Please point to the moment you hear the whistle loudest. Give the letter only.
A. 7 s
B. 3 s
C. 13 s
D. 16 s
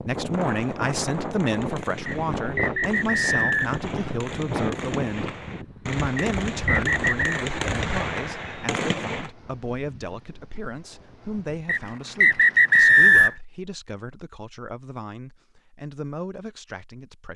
C.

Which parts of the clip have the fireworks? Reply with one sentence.
You can hear the fireworks from 0.1 to 9.3 s.